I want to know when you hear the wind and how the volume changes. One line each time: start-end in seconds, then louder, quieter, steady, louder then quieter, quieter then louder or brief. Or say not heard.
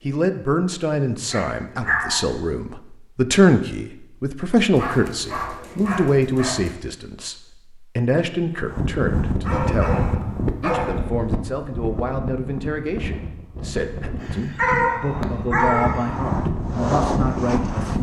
8.6-17.9 quieter then louder.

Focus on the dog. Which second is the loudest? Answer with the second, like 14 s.
15 s.